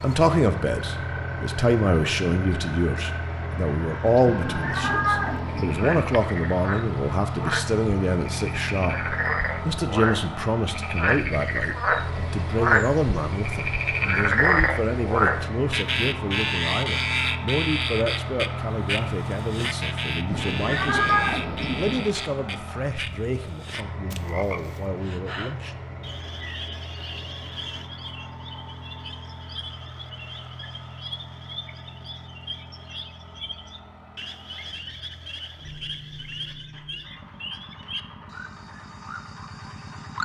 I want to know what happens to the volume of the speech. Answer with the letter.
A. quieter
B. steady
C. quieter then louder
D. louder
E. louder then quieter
A.